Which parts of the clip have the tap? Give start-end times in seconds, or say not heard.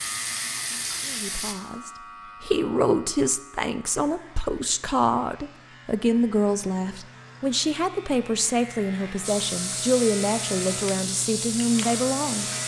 0.0-1.6, 9.2-12.6.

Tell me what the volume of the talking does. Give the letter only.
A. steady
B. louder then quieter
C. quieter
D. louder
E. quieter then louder
A.